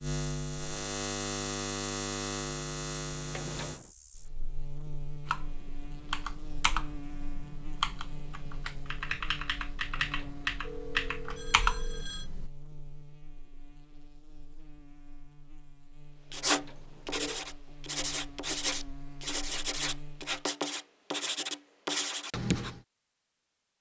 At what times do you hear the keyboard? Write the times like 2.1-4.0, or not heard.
5.2-12.5.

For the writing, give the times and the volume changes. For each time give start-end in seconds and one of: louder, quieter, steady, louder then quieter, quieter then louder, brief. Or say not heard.
16.3-22.8 steady.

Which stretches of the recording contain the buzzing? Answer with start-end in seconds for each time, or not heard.
0.0-20.4.